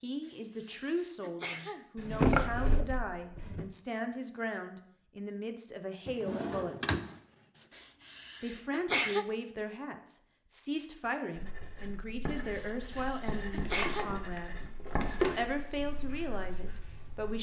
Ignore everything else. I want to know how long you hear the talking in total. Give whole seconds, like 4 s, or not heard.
15 s.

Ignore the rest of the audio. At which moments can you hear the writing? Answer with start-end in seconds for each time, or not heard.
11.3-17.3.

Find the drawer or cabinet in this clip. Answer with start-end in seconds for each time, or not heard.
1.9-3.6, 6.0-7.1, 13.7-15.4.